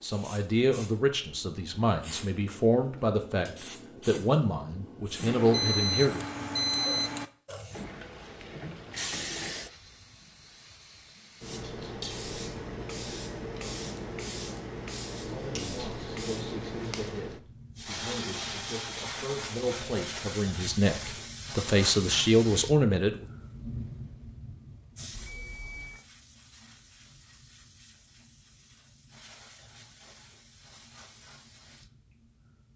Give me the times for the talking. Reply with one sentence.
The talking can be heard from 0.0 to 6.2 s and from 15.2 to 23.2 s.